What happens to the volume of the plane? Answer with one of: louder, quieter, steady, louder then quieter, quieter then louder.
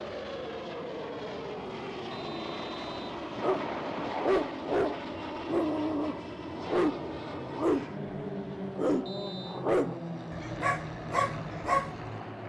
steady.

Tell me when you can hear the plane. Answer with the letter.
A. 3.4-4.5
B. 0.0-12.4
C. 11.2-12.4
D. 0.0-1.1
B.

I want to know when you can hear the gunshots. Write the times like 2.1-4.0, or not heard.
3.4-4.5.